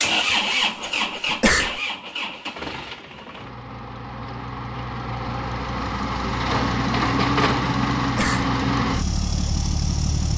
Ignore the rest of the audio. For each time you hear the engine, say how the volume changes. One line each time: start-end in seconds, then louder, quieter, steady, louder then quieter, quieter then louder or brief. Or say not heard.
0.0-10.3 quieter then louder.